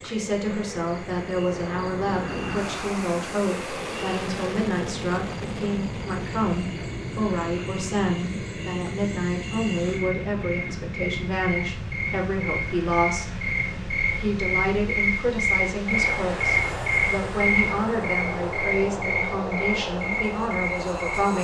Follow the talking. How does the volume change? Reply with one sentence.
The volume of the talking stays about the same.